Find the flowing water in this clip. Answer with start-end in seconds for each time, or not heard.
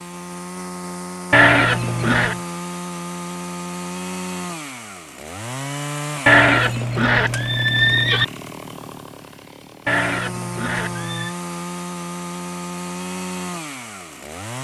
not heard.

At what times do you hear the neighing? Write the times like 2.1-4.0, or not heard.
1.3-2.4, 6.2-8.2, 9.8-11.3.